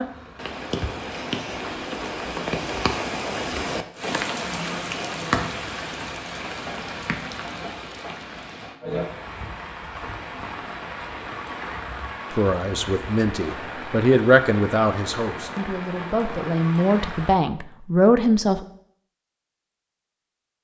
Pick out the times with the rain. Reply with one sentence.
You can hear the rain from 0.0 to 17.4 s.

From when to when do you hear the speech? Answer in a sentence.
The speech can be heard from 12.3 to 18.6 s.